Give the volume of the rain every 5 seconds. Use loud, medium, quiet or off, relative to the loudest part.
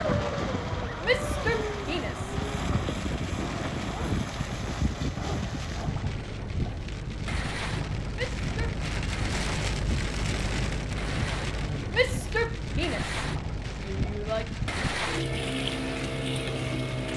medium, loud, loud, medium.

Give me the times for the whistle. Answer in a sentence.
The whistle can't be heard in this clip.